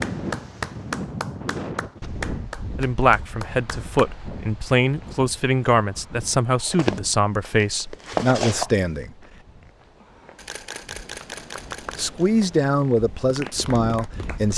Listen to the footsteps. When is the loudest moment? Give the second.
8 s.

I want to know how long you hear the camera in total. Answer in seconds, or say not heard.
2 s.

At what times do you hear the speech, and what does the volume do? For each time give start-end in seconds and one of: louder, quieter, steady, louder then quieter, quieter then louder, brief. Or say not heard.
2.8-9.2 steady
11.9-14.5 brief.